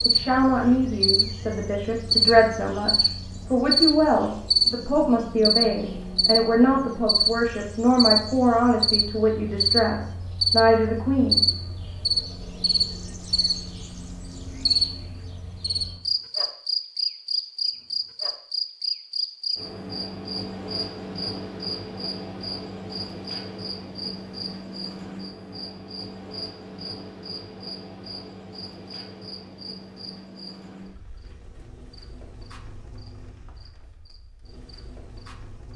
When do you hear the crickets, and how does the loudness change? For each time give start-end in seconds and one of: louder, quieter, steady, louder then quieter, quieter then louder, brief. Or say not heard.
0.0-35.7 quieter.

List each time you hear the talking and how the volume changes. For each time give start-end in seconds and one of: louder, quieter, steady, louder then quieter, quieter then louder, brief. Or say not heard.
0.1-11.4 steady.